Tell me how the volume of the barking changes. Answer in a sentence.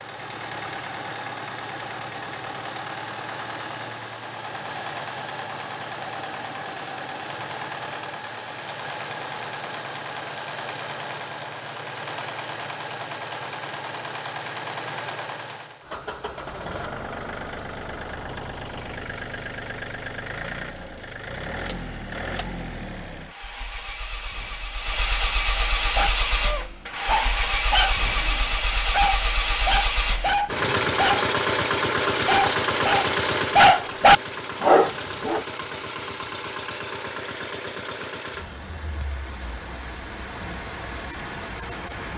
The volume of the barking goes up.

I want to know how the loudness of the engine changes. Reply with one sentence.
The loudness of the engine goes up, then down.